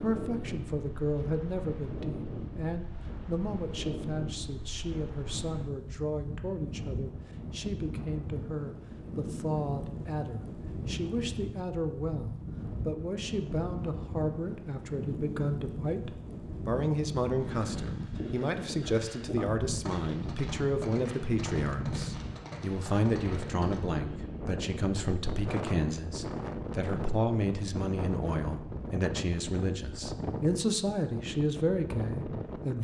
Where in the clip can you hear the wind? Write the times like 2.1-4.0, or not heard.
0.0-32.7.